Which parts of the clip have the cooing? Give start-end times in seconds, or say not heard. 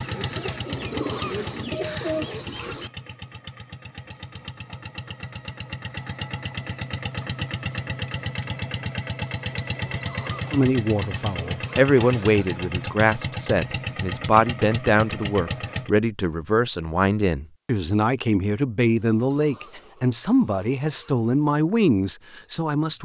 0.0-2.9.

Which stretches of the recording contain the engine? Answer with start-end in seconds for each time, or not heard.
0.0-15.9.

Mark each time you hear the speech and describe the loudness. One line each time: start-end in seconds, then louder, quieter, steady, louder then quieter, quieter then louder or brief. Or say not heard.
10.5-23.0 steady.